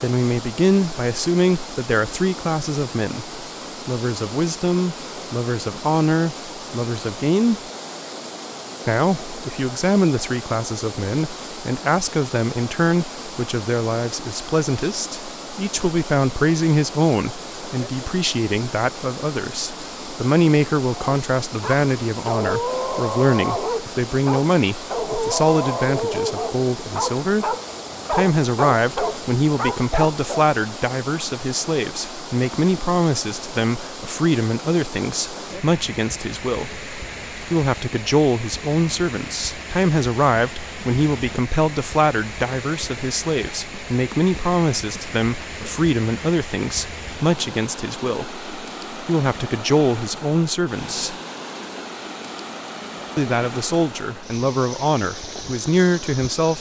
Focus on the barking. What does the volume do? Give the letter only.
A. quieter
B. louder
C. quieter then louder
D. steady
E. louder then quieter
D.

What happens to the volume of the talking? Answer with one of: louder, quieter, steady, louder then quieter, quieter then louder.
steady.